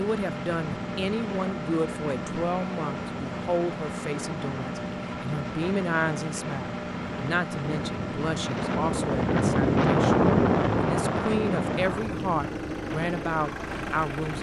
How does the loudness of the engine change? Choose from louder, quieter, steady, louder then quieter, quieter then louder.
steady.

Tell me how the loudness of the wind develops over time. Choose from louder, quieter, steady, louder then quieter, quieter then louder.
louder then quieter.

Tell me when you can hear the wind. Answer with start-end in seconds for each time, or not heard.
0.0-14.3.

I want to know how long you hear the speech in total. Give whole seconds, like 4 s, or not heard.
14 s.